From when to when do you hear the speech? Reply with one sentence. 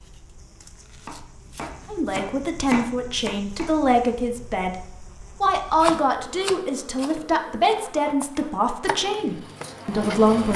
You can hear the speech from 1.9 to 4.8 s and from 5.4 to 10.5 s.